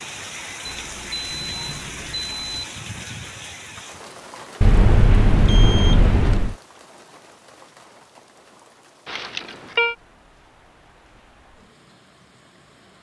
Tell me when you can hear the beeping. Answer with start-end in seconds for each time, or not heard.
0.7-2.6, 4.6-6.5, 9.1-9.9.